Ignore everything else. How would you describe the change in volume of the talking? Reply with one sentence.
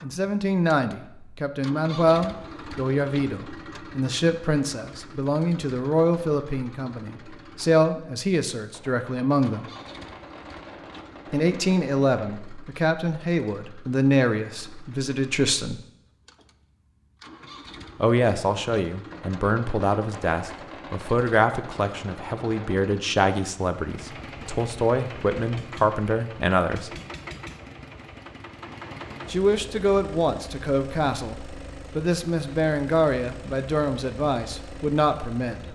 The loudness of the talking stays about the same.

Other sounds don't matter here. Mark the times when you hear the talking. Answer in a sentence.
You can hear the talking from 0.0 to 9.7 s, from 11.3 to 15.8 s, from 17.9 to 26.9 s and from 29.2 to 35.6 s.